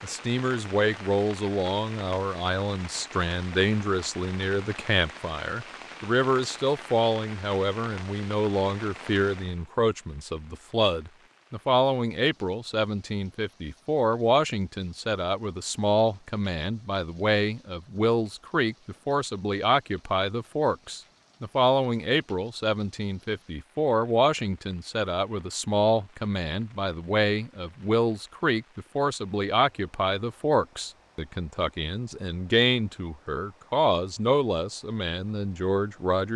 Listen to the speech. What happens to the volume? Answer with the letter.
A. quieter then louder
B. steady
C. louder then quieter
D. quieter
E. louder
B.